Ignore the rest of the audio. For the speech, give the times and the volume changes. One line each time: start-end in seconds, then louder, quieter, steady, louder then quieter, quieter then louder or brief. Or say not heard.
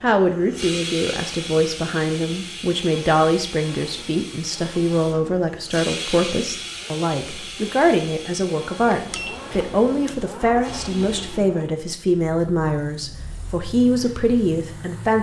0.0-15.1 steady.